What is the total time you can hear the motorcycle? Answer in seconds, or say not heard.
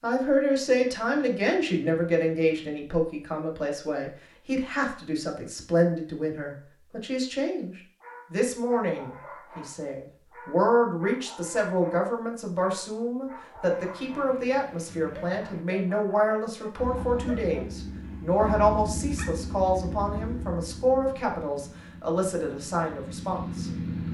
7 s.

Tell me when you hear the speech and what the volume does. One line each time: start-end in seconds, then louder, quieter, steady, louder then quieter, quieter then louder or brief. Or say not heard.
0.0-23.7 steady.